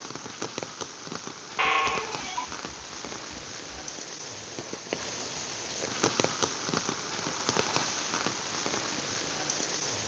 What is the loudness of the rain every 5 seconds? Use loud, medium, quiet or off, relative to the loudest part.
medium, loud.